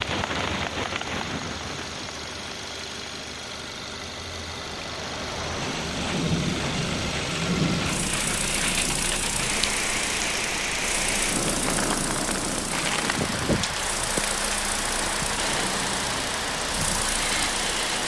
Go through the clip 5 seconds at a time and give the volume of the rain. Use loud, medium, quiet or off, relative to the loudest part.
medium, loud, loud, loud.